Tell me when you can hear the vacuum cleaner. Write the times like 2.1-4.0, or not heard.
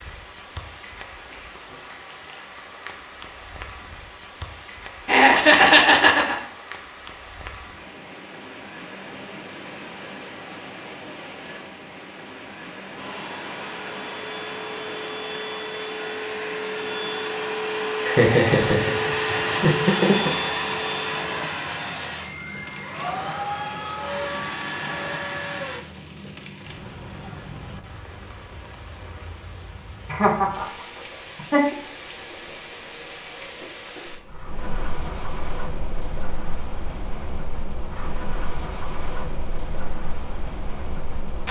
12.9-25.8.